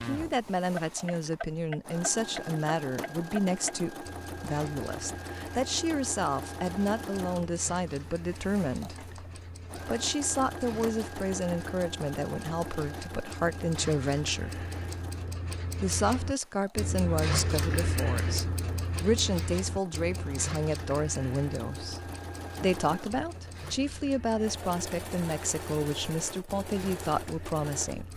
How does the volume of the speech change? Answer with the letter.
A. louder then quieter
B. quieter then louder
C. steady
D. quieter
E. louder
C.